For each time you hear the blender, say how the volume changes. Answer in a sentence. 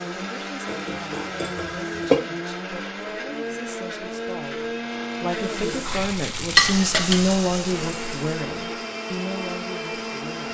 The blender can be heard from 0.0 to 10.4 s, at a steady volume.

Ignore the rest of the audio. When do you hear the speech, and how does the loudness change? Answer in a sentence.
The speech can be heard from 0.0 to 10.4 s, getting louder then quieter.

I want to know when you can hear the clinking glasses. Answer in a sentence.
You can hear the clinking glasses from 0.7 to 2.2 s and from 6.5 to 7.2 s.